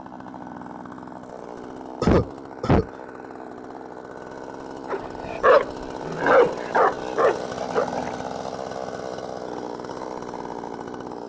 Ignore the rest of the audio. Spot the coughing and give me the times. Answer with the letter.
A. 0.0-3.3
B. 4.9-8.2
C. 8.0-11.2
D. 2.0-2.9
D.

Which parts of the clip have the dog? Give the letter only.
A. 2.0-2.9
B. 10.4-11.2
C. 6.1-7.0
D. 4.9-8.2
D.